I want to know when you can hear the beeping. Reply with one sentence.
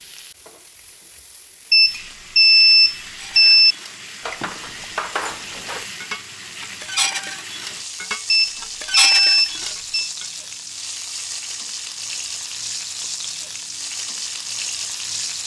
The beeping can be heard from 1.7 to 3.8 s and from 8.2 to 10.1 s.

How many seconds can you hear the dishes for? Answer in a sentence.
You can hear the dishes for 7 seconds altogether.